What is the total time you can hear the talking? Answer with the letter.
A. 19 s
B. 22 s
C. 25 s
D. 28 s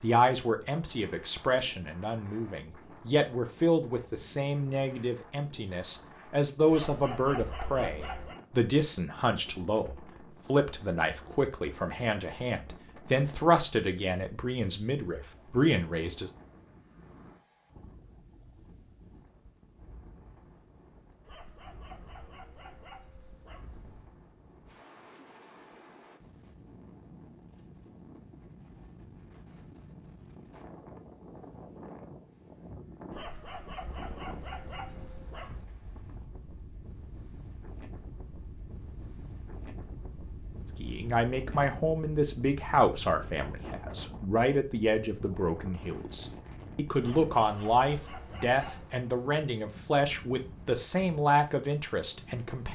D.